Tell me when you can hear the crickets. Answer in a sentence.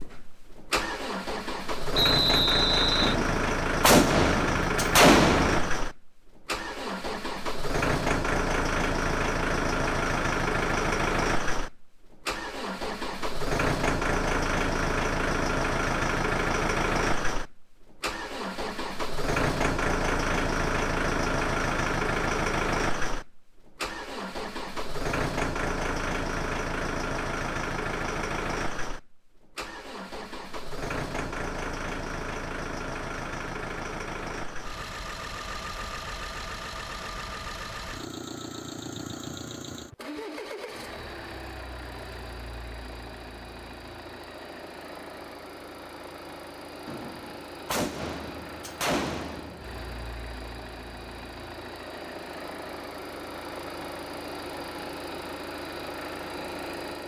You can't hear the crickets here.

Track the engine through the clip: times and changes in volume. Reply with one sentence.
You can hear the engine from 0.0 to 57.0 s, getting quieter.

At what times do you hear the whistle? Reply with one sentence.
You can hear the whistle from 1.9 to 3.1 s.